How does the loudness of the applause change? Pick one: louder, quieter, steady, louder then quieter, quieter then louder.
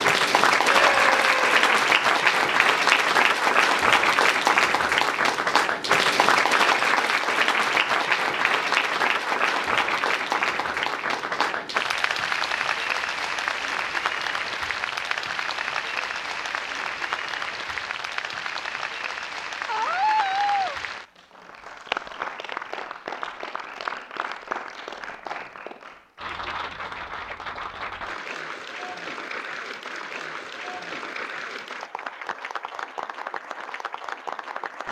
quieter.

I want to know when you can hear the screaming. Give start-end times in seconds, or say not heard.
0.6-1.8, 19.6-20.8.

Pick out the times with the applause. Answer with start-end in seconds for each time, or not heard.
0.0-34.8.